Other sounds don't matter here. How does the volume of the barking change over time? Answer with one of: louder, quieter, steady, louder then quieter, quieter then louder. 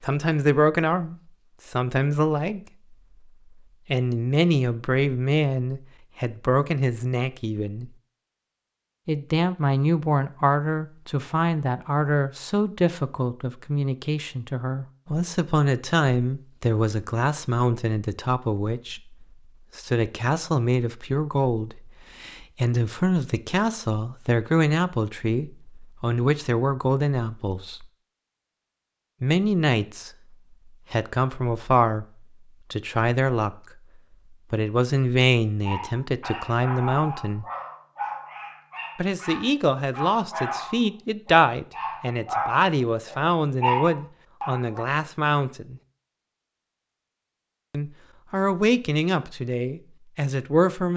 louder.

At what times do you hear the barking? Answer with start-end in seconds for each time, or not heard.
35.6-44.9.